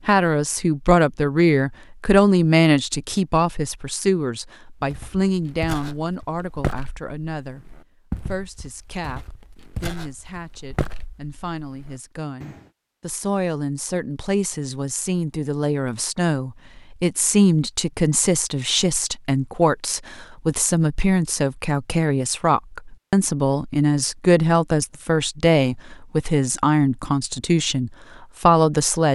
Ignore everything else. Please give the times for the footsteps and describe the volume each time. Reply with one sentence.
The footsteps can be heard from 4.8 to 12.7 s, getting louder then quieter.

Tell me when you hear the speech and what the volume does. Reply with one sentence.
The speech can be heard from 0.1 to 29.0 s, getting quieter then louder.